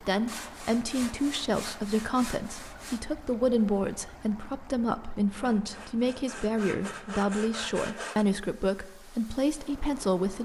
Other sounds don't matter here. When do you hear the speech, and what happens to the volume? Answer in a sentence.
You can hear the speech from 0.0 to 10.3 s, at a steady volume.